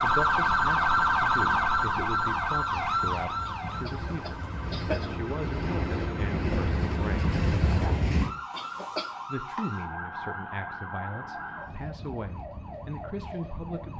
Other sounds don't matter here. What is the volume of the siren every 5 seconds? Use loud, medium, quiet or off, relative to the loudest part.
loud, quiet, quiet.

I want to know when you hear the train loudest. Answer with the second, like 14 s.
8 s.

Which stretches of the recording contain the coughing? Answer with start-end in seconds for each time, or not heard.
3.5-5.0, 8.5-9.2.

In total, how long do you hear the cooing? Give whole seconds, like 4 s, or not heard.
not heard.